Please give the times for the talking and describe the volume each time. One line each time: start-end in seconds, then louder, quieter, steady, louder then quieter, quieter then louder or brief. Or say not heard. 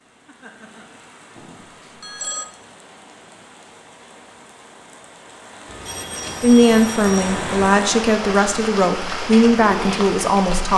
6.4-10.7 steady.